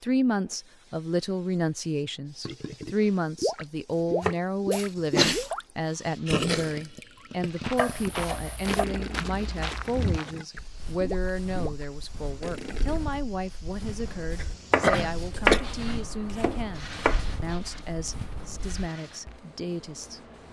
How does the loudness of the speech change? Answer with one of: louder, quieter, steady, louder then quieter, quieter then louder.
quieter.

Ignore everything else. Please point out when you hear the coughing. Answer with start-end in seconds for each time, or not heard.
4.7-5.5, 14.3-15.6.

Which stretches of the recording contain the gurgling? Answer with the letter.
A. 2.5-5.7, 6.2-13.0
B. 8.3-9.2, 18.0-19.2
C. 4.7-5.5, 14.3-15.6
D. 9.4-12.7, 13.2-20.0
A.